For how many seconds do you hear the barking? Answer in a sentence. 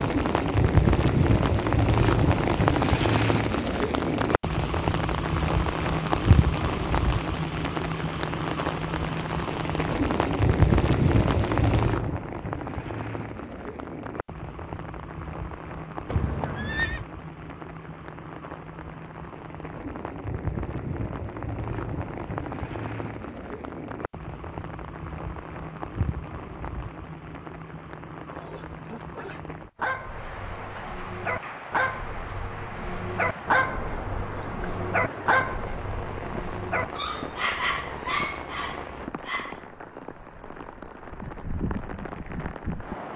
The barking can be heard for 11 seconds in total.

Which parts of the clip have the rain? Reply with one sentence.
You can hear the rain from 0.0 to 43.1 s.